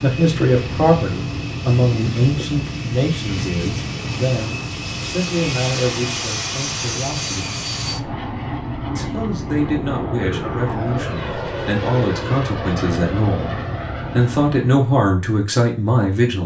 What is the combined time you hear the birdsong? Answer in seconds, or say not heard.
not heard.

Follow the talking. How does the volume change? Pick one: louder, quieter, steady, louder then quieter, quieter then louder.
quieter then louder.